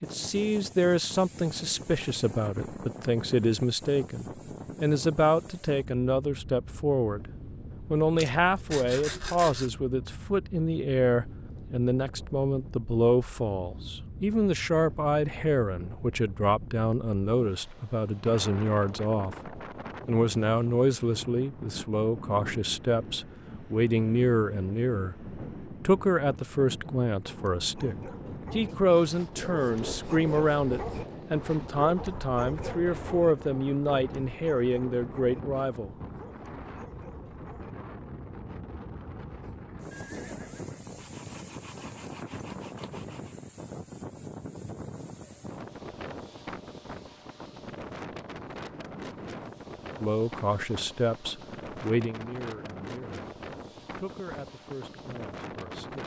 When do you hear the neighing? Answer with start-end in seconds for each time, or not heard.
39.9-41.0.